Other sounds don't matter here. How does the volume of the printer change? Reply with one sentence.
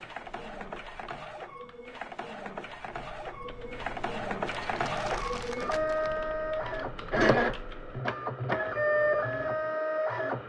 The loudness of the printer goes up.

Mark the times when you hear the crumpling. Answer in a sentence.
The crumpling can be heard from 4.5 to 6.2 s.